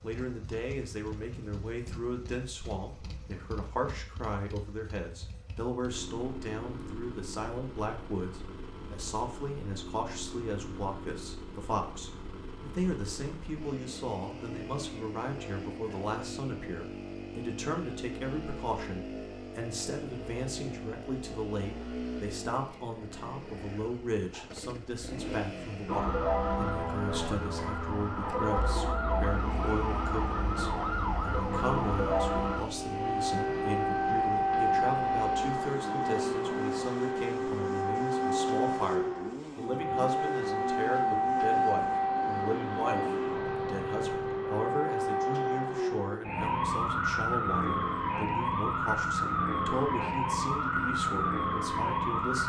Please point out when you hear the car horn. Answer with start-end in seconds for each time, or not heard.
not heard.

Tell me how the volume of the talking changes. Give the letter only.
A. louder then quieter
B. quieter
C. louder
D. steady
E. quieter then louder
D.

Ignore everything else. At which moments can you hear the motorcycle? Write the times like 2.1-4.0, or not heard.
0.0-44.6.